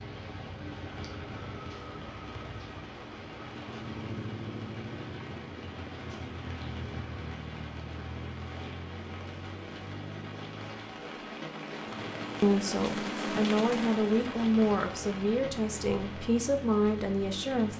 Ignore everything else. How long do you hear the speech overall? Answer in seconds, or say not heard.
5 s.